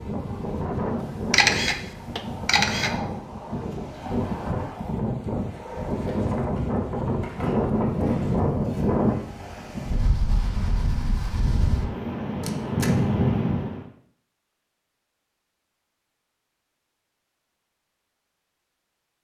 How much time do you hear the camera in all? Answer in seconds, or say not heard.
2 s.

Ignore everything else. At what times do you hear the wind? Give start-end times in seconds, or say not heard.
0.0-13.8.